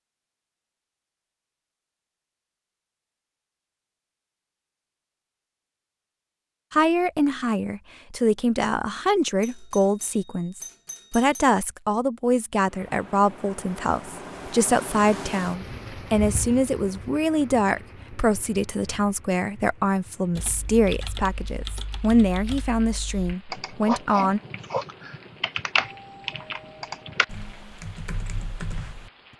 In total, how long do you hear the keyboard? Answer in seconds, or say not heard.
9 s.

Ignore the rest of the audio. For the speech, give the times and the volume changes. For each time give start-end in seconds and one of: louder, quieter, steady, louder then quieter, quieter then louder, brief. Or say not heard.
6.7-24.4 steady.